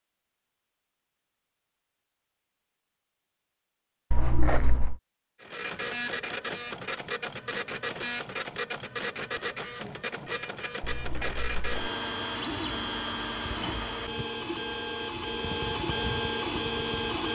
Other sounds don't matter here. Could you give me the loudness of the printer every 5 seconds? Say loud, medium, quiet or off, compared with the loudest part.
off, loud, loud, loud.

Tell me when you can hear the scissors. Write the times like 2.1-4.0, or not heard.
4.1-5.0, 10.8-11.9.